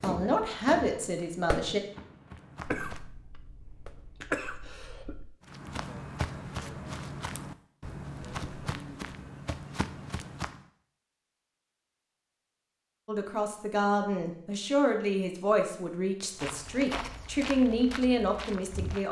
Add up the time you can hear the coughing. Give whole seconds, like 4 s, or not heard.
3 s.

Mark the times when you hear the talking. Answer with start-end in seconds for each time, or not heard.
0.0-1.8, 13.1-19.0.